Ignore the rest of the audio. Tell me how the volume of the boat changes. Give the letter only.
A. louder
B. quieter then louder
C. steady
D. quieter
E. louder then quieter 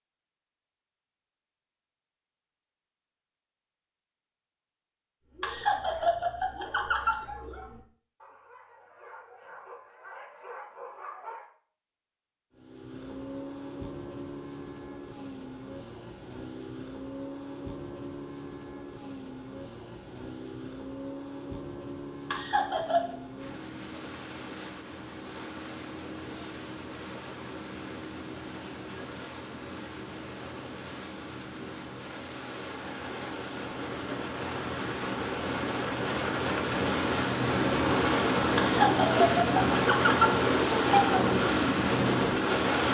A.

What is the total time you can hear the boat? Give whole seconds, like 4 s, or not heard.
30 s.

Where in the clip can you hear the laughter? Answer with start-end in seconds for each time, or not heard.
5.4-7.6, 22.3-23.1, 38.5-41.2.